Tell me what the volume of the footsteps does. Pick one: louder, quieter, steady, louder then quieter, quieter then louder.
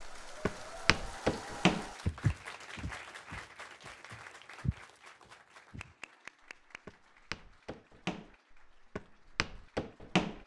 quieter then louder.